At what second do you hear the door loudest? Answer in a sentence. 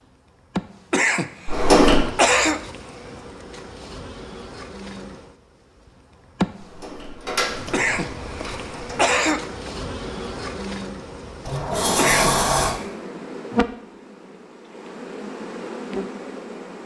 The volume of the door peaks at 2 seconds.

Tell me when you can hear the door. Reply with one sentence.
The door can be heard from 1.4 to 2.1 s, from 6.6 to 9.0 s and from 11.4 to 12.8 s.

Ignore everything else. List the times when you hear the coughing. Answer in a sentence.
You can hear the coughing from 0.9 to 2.6 s, from 7.7 to 9.7 s and from 11.9 to 12.9 s.